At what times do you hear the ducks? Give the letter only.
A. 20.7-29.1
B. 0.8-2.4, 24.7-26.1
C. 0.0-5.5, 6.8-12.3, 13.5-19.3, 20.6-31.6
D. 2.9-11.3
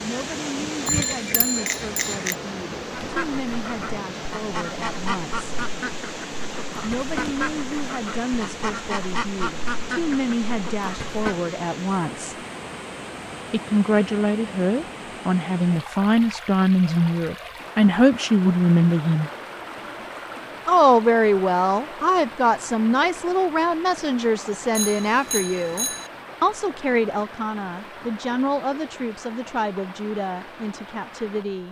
D.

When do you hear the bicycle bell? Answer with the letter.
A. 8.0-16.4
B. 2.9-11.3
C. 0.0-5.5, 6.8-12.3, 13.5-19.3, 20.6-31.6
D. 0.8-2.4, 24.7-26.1
D.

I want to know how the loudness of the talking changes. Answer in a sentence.
The loudness of the talking goes up, then down.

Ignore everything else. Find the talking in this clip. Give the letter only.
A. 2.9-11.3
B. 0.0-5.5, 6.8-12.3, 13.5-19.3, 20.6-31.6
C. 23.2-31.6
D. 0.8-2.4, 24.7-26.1
B.